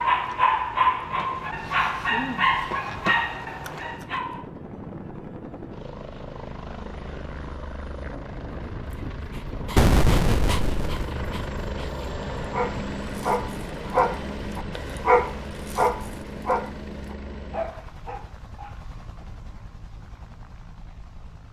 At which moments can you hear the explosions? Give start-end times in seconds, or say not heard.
9.8-11.1.